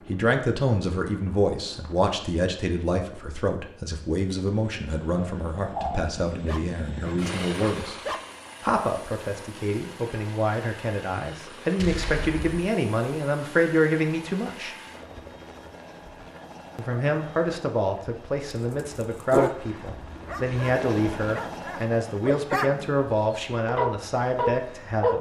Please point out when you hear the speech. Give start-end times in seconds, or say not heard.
0.1-8.0, 8.6-14.8, 16.8-25.1.